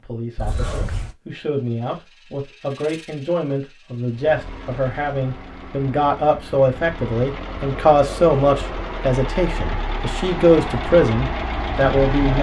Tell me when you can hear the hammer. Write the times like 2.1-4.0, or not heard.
not heard.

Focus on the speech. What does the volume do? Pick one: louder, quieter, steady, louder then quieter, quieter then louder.
louder.